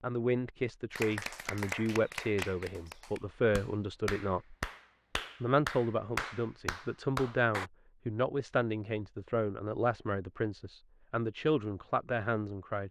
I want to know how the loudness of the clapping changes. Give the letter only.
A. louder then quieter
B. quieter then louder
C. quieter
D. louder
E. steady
B.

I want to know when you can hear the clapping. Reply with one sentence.
The clapping can be heard from 0.9 to 7.7 s.